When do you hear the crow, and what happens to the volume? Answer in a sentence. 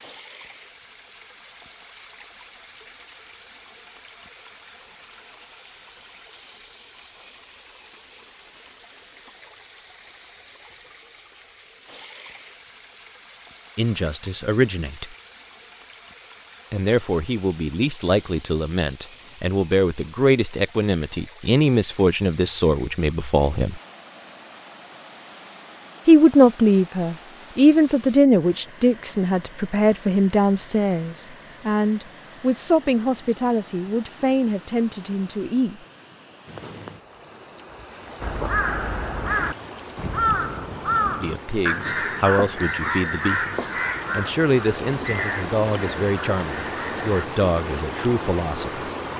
You can hear the crow from 38.2 to 47.2 s, getting quieter.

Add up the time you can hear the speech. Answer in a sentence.
The speech can be heard for 26 seconds in total.